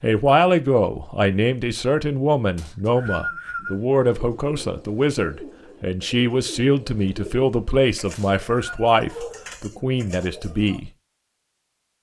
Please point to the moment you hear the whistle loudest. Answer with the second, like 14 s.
3 s.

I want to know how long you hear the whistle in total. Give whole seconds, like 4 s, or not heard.
2 s.